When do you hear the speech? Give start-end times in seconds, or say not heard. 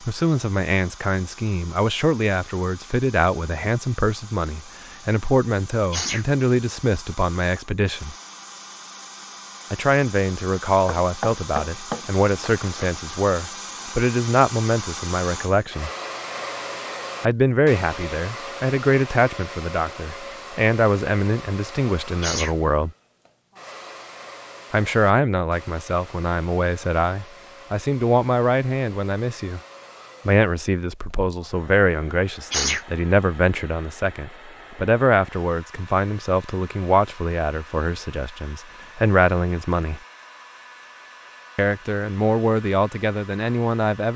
0.0-8.2, 9.7-15.9, 17.2-22.9, 24.7-29.6, 30.2-40.0, 41.5-44.1.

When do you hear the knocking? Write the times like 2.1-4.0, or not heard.
11.0-12.8.